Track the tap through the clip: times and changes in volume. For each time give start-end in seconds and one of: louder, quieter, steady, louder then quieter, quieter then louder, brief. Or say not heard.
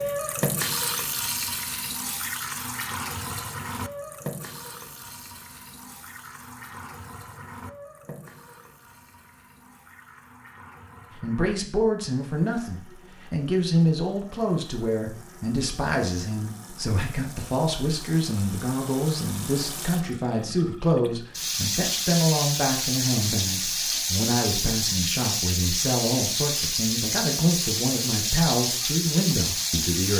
0.0-30.1 quieter then louder.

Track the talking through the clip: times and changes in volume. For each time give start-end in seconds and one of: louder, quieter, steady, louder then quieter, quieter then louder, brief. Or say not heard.
11.2-30.1 steady.